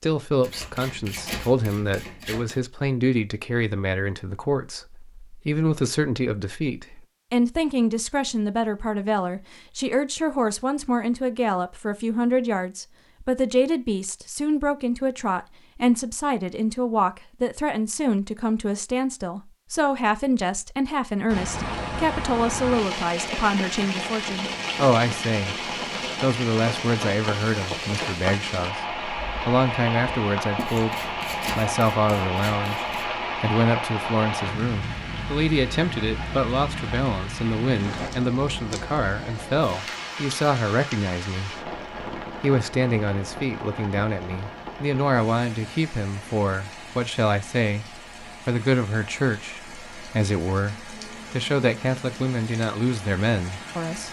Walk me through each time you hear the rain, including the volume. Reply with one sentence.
The rain can be heard from 21.2 to 54.0 s, getting quieter.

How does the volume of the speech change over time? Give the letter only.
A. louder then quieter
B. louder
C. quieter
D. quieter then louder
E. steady
E.